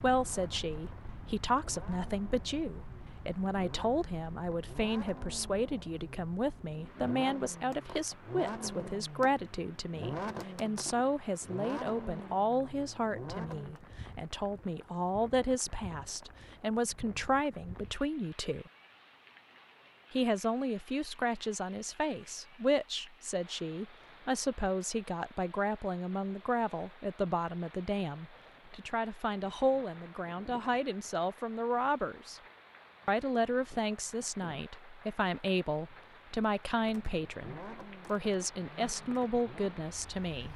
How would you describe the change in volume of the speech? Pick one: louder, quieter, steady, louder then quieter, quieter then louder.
steady.